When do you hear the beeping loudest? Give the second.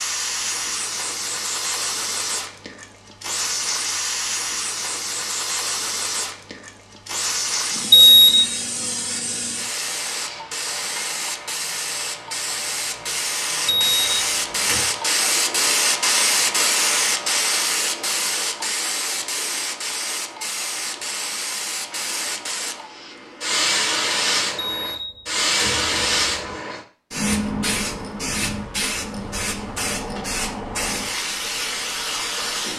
8 s.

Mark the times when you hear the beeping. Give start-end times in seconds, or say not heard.
7.9-8.4, 13.7-14.8, 24.6-26.6.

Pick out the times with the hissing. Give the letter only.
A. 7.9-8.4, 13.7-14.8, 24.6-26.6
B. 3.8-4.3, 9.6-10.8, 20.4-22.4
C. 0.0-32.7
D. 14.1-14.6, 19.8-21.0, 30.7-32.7
C.